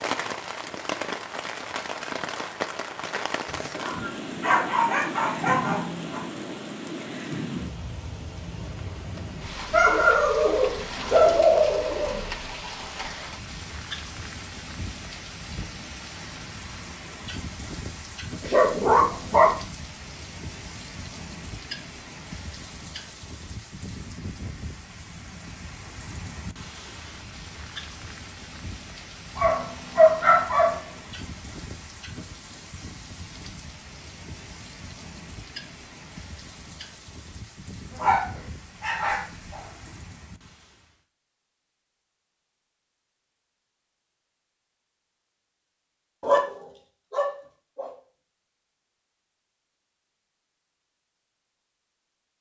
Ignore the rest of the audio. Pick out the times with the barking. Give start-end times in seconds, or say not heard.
3.5-6.2, 9.7-12.3, 18.4-19.6, 29.4-30.9, 38.0-39.6, 46.2-47.9.